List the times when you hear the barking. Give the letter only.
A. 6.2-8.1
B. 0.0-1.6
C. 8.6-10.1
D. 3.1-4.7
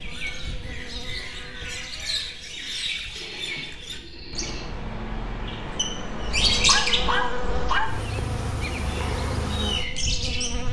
A.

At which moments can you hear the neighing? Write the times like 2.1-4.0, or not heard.
3.1-4.7.